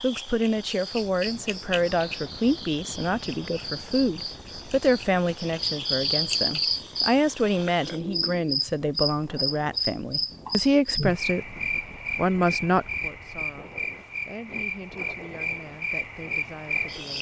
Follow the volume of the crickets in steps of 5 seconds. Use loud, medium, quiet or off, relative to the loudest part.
medium, loud, loud, loud.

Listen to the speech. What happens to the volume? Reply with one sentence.
The volume of the speech goes down.